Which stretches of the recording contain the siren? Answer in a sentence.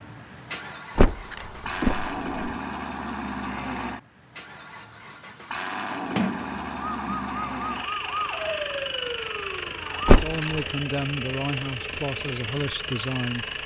You can hear the siren from 6.8 to 10.2 s.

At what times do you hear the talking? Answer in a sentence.
The talking can be heard from 10.0 to 13.6 s.